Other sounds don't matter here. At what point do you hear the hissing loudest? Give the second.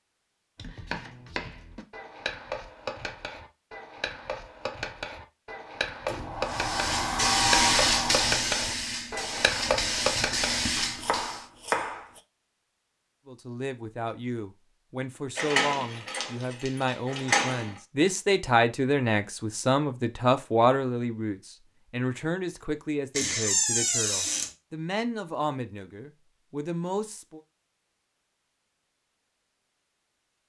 8 s.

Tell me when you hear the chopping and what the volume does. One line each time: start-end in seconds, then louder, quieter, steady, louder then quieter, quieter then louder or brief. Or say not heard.
0.6-12.2 louder.